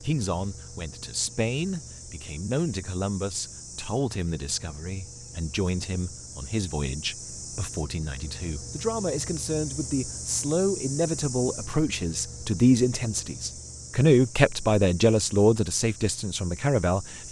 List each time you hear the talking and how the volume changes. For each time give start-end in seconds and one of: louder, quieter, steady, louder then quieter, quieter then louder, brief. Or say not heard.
0.0-17.2 louder.